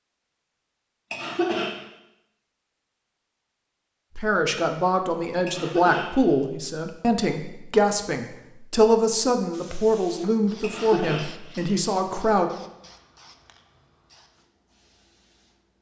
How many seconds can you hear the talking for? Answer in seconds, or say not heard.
8 s.